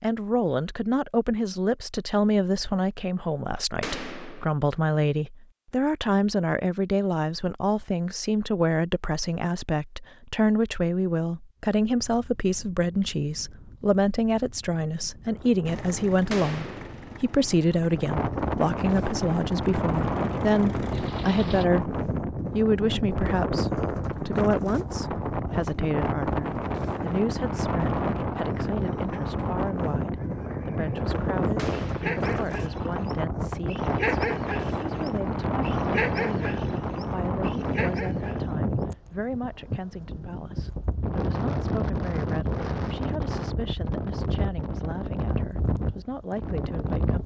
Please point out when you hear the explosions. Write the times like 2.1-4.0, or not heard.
3.8-4.5, 16.3-16.9, 31.6-32.2.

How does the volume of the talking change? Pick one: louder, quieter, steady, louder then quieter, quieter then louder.
quieter.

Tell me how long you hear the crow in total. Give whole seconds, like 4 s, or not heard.
not heard.